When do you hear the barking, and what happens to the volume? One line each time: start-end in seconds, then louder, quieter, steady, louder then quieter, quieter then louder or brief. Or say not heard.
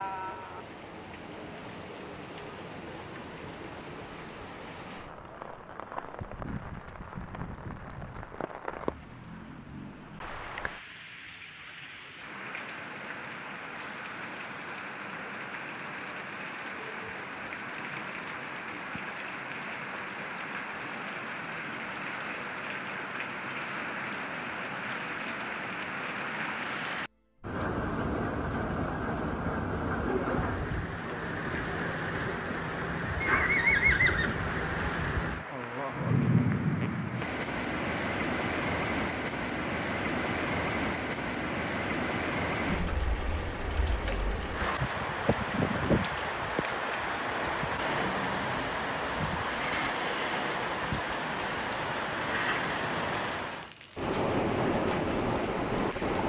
not heard.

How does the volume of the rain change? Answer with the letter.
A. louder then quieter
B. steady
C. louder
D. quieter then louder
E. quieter
C.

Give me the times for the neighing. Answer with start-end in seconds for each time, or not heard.
33.2-34.4.